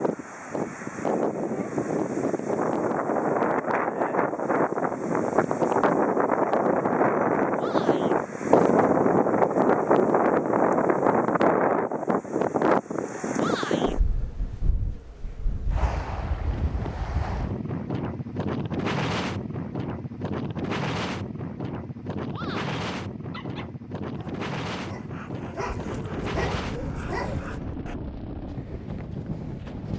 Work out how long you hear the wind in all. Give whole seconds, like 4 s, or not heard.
30 s.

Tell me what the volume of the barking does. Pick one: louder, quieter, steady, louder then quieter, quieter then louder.
louder.